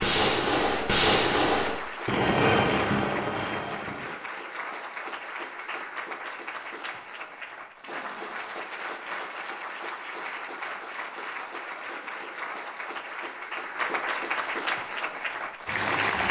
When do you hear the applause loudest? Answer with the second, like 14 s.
16 s.